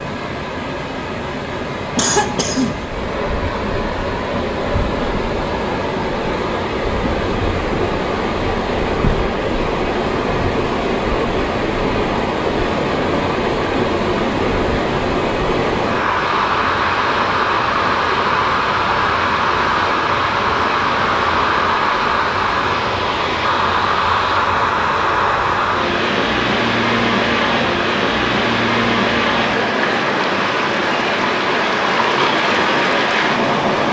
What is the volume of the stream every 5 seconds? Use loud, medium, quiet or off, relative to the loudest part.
medium, loud, loud, loud, loud, loud, loud.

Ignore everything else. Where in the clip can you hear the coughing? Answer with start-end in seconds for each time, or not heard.
1.9-3.0.